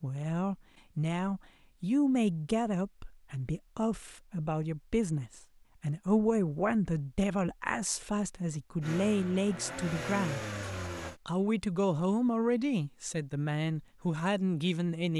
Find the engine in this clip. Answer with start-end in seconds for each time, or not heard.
8.8-11.2.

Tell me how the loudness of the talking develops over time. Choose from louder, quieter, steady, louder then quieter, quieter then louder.
steady.